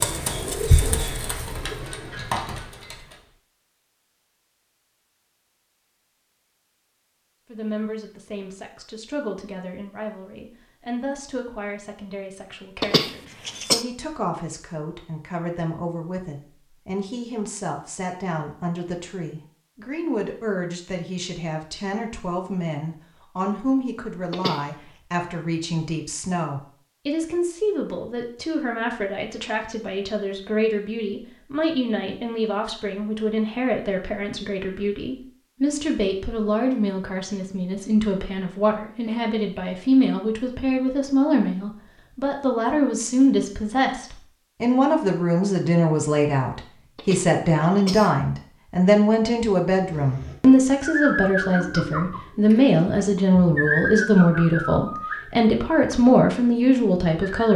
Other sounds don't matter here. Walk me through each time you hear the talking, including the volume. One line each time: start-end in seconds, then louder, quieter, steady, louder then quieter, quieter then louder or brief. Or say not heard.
7.5-57.5 louder.